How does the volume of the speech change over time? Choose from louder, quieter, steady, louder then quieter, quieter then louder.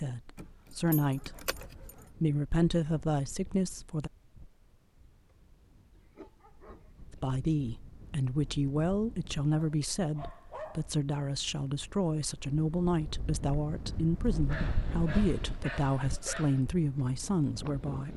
steady.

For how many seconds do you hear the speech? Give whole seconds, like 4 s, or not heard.
15 s.